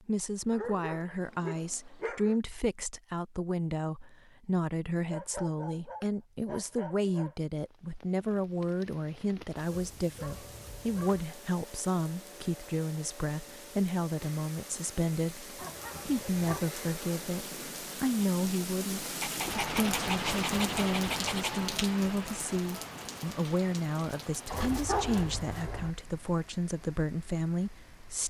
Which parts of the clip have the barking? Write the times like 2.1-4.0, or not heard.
0.5-2.4, 5.0-7.3, 9.7-11.2, 15.6-16.6, 19.2-21.6, 24.5-25.9.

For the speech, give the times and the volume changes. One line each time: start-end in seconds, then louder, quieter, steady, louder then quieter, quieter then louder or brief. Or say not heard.
0.1-28.2 steady.